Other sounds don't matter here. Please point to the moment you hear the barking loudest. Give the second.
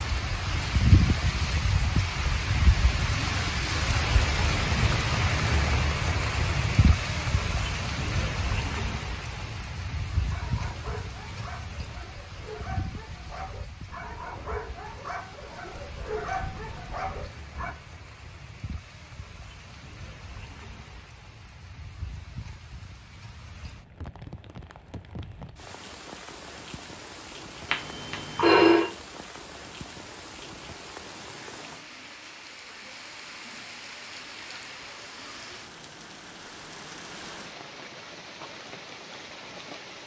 16 s.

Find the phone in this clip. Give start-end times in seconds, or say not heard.
27.7-28.9.